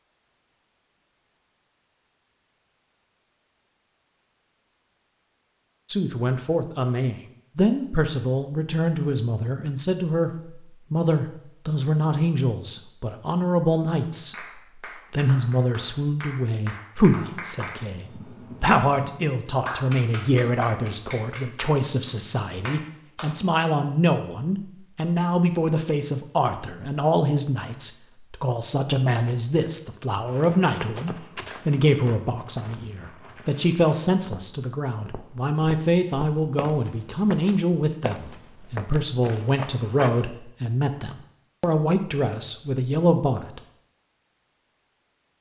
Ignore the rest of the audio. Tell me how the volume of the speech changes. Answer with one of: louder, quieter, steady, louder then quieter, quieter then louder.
steady.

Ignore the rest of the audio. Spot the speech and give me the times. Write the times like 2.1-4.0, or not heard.
5.8-43.6.